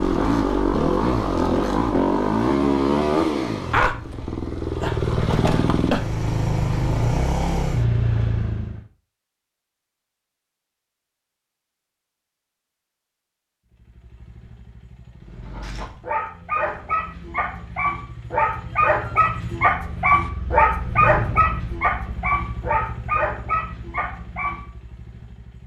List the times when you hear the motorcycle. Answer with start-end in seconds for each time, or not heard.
0.0-8.8, 13.7-25.6.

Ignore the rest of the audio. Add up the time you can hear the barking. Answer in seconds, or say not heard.
9 s.